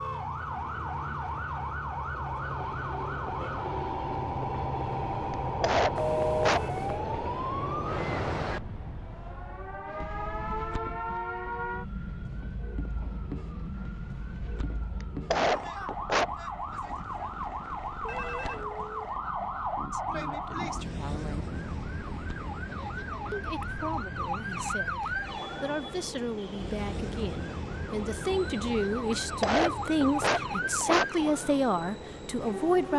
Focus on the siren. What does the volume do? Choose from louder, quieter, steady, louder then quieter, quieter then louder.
steady.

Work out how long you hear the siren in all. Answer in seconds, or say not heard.
33 s.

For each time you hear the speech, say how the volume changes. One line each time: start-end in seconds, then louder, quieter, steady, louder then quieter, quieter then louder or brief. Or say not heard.
19.8-21.6 brief
23.3-32.9 louder.